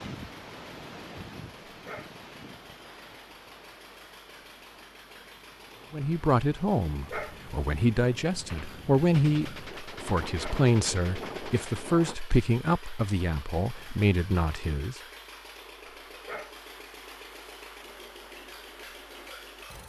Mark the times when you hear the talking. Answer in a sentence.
You can hear the talking from 5.9 to 15.0 s.